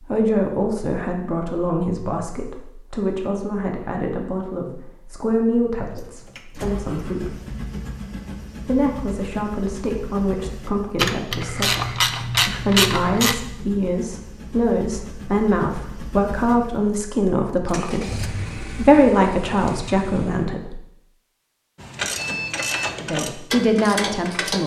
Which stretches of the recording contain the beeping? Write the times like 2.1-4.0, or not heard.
22.1-23.1.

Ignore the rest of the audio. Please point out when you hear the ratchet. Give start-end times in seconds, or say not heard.
10.9-13.3, 21.8-24.6.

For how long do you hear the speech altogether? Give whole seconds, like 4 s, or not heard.
21 s.